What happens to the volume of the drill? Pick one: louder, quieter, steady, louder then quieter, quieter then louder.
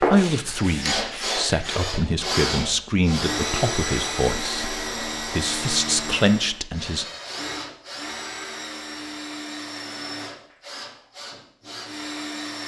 quieter.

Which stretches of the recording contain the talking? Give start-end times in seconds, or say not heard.
0.0-7.0.